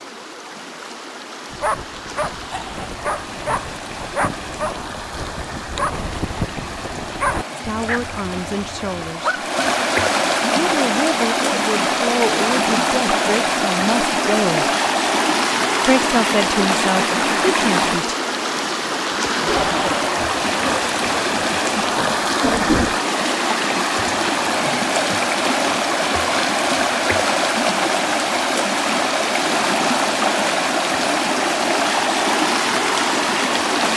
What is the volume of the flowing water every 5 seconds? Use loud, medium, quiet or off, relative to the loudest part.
quiet, medium, loud, loud, loud, loud, loud.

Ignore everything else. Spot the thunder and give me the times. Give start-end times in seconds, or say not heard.
19.4-23.1.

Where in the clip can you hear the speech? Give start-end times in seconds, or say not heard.
7.5-9.4, 10.5-14.7, 15.8-18.1.